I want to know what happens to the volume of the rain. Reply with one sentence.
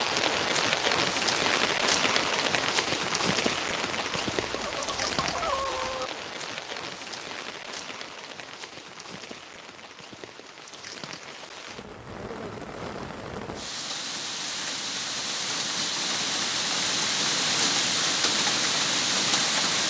The loudness of the rain goes down, then up.